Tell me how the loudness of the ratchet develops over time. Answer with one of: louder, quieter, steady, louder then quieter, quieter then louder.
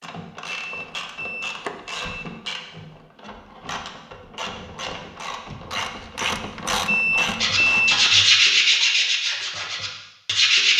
louder.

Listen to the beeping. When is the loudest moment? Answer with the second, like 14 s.
8 s.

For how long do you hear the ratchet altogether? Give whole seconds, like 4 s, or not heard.
8 s.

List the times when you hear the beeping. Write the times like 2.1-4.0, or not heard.
0.5-2.1, 6.8-8.1.